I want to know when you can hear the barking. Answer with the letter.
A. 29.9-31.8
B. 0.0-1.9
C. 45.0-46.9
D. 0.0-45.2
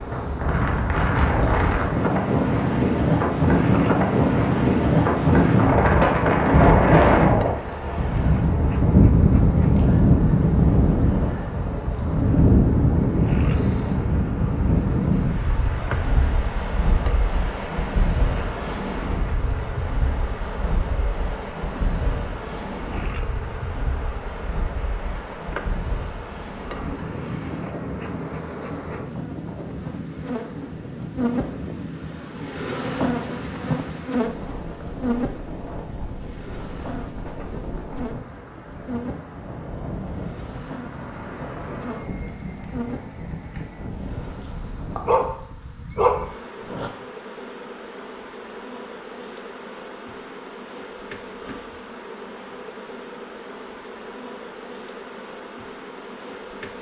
C.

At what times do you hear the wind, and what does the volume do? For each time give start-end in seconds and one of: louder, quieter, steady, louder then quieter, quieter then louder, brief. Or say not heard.
0.0-45.2 quieter.